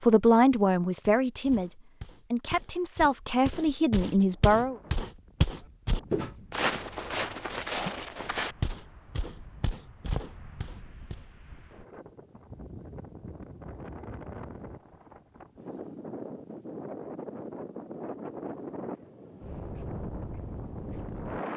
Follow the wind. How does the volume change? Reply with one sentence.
The volume of the wind goes up.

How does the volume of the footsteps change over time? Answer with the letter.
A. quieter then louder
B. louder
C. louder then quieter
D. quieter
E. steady
C.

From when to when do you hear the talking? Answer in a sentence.
The talking can be heard from 0.0 to 4.8 s.